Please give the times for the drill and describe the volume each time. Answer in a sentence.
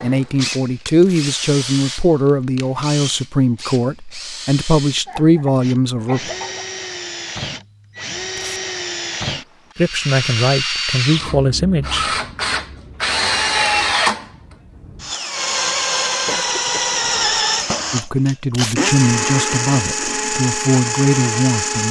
You can hear the drill from 0.0 to 21.8 s, getting louder.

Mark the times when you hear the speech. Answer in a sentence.
You can hear the speech from 0.0 to 6.3 s, from 9.8 to 12.2 s and from 17.9 to 21.8 s.